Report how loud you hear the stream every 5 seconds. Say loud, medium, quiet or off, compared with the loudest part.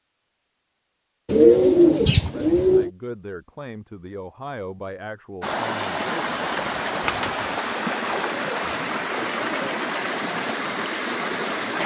off, loud, loud.